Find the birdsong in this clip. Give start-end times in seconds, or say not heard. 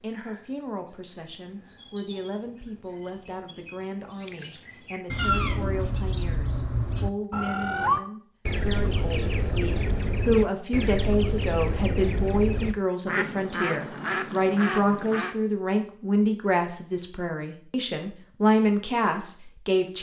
0.0-15.3.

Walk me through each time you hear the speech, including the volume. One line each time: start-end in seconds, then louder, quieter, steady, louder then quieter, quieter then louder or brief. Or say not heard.
0.0-19.9 louder.